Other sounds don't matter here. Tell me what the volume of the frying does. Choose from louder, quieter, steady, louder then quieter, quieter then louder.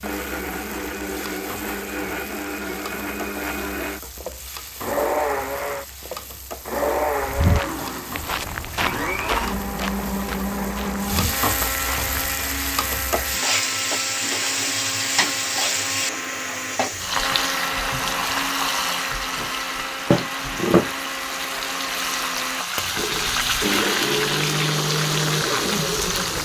louder.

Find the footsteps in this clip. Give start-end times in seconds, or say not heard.
7.2-12.3.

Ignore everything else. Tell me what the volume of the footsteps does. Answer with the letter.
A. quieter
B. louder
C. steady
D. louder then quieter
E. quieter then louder
A.